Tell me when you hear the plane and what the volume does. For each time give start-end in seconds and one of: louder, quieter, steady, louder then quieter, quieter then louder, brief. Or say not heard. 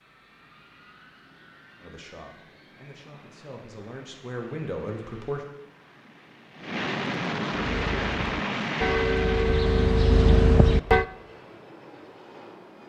0.0-12.8 louder then quieter.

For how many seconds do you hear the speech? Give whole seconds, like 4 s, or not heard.
4 s.